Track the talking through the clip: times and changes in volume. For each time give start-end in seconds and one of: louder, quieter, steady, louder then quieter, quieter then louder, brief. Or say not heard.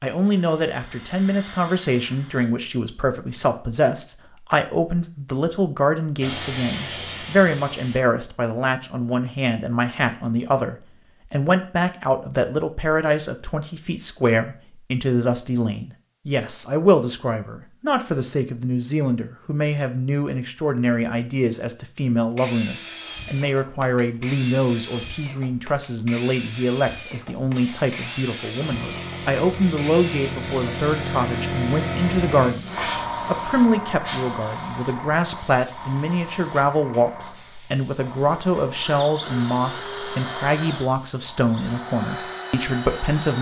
0.0-43.3 steady.